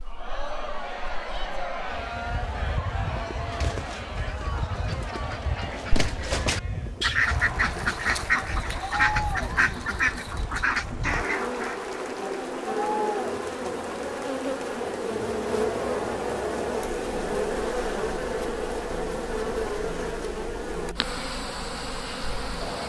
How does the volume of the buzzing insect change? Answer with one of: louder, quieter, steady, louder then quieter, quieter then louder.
louder.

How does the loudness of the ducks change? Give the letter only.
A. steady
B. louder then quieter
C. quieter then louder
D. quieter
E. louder
E.